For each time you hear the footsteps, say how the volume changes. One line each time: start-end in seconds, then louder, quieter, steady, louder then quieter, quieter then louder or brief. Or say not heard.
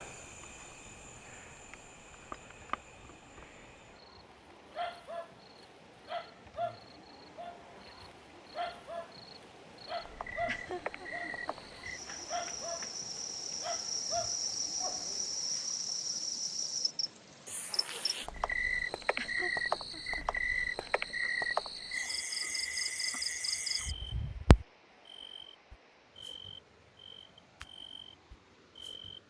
not heard.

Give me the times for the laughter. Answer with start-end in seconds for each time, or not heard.
10.3-12.2, 19.1-20.9.